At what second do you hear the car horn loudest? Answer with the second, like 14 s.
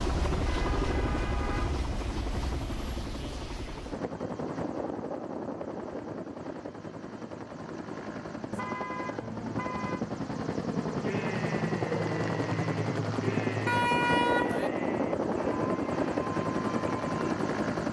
14 s.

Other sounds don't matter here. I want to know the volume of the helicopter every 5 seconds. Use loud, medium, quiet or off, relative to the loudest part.
medium, medium, loud, loud.